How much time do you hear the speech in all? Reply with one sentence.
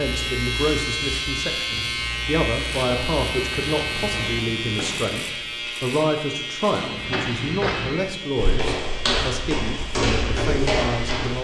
The speech can be heard for 11 seconds in total.